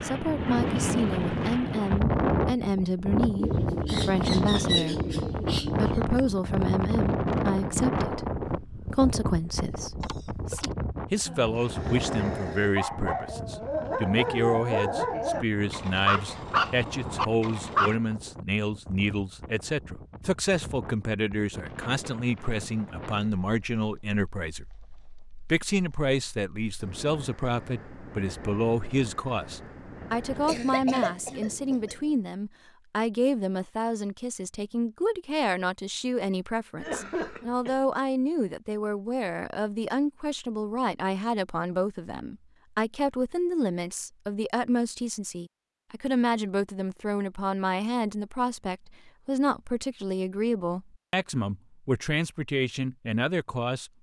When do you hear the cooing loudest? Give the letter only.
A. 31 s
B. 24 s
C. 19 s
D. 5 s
D.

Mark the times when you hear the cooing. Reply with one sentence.
The cooing can be heard from 3.4 to 6.0 s.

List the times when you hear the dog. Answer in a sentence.
The dog can be heard from 11.2 to 17.9 s.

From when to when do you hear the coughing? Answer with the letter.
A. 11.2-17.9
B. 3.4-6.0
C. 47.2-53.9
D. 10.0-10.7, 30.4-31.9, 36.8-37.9
D.